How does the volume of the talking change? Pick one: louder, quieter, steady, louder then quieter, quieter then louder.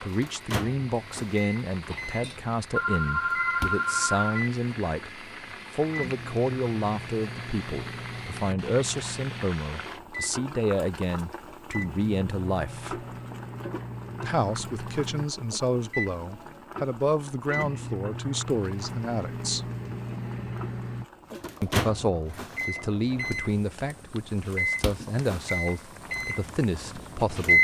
steady.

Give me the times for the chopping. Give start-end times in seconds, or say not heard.
not heard.